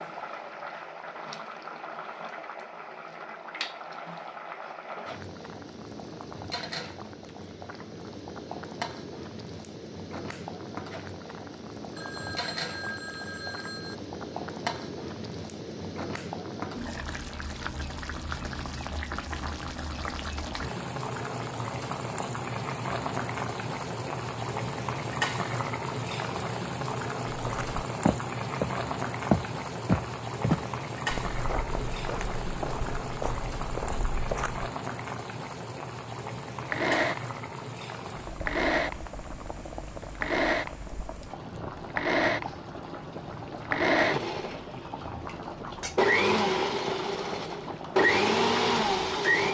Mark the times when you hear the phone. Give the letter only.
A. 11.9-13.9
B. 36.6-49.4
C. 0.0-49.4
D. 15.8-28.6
A.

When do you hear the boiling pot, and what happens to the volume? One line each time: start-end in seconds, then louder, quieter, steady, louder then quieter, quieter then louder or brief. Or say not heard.
0.0-49.4 louder then quieter.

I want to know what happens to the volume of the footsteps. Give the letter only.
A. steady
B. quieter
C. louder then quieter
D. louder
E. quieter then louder
B.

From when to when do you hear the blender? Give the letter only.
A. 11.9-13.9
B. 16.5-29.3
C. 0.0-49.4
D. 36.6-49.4
D.